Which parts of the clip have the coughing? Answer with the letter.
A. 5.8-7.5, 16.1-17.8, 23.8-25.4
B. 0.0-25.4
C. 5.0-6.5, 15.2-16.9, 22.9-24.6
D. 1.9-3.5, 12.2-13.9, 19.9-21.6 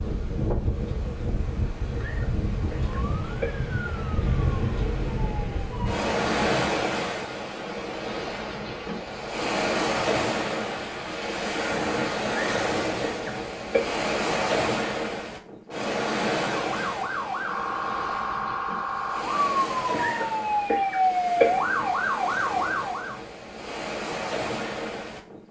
D.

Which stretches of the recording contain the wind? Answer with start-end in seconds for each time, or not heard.
0.0-25.4.